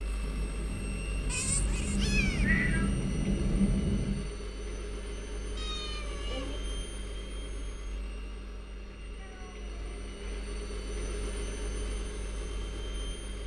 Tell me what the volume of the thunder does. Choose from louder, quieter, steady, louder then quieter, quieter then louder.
louder.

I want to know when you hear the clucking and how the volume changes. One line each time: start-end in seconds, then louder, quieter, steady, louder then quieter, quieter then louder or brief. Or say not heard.
not heard.